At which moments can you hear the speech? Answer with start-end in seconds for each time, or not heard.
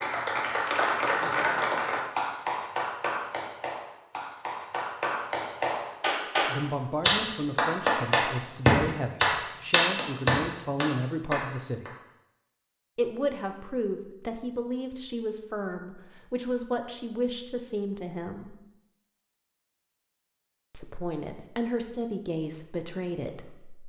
6.5-11.9, 12.9-18.6, 20.7-23.8.